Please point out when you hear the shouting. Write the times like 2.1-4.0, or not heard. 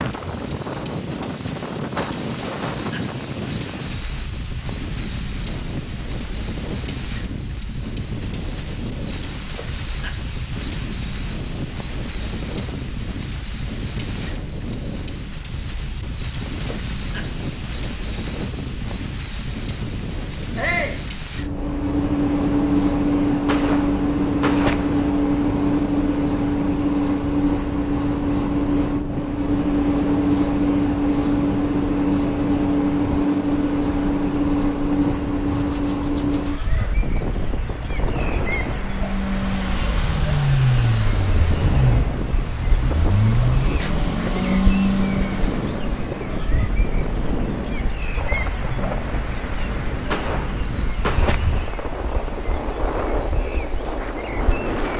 20.6-21.0.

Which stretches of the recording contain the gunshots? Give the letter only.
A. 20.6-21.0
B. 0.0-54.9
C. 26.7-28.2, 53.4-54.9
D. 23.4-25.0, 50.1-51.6
D.